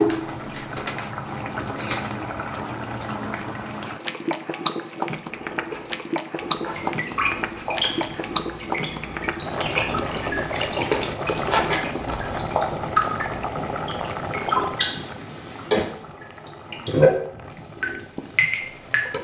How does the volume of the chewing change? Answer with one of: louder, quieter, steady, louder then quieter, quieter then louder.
louder.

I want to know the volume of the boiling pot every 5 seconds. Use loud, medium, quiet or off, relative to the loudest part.
loud, loud, loud, medium.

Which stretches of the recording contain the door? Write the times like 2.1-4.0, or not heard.
0.1-1.0.